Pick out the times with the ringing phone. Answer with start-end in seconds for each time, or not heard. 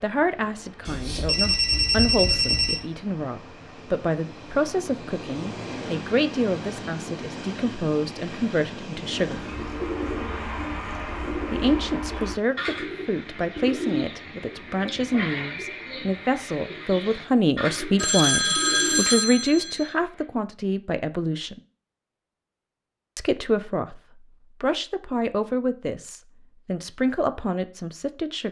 0.8-2.8, 17.9-19.9.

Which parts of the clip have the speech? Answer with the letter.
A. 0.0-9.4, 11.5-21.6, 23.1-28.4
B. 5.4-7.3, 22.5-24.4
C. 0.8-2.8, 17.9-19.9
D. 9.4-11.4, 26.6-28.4
A.